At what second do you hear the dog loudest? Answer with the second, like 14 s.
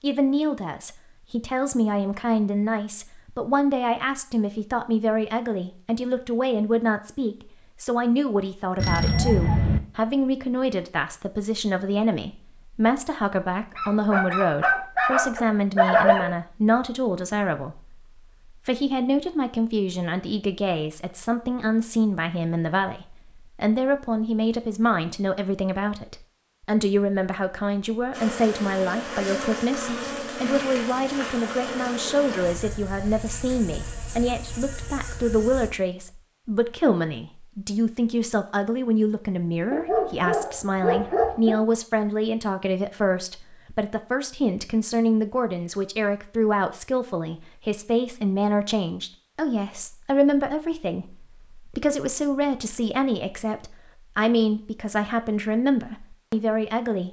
16 s.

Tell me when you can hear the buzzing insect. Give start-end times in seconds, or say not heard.
28.1-35.7.